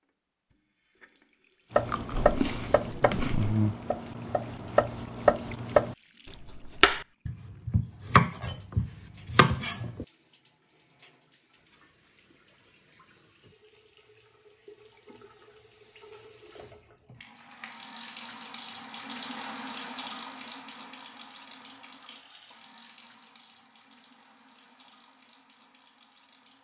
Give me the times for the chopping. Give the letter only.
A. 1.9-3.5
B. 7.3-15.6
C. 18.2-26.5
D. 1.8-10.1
D.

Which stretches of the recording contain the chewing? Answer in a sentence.
You can hear the chewing from 1.9 to 3.5 s.